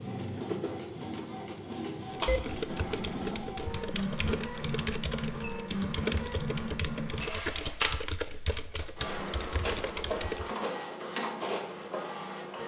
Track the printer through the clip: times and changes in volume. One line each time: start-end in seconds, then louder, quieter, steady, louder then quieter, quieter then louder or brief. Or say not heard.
0.0-12.6 steady.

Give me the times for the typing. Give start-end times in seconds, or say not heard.
2.1-10.5.